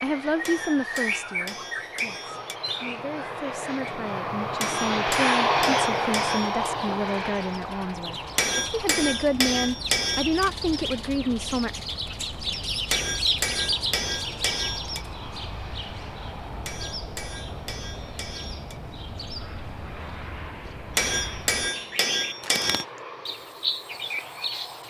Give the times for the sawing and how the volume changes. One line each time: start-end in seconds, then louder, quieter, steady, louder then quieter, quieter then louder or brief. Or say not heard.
not heard.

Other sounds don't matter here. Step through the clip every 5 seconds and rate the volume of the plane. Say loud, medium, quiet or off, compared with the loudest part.
medium, loud, quiet, quiet, quiet.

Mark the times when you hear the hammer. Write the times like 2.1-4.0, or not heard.
0.5-2.6, 4.6-6.7, 8.3-10.5, 12.9-15.1, 16.6-18.8, 20.9-22.9.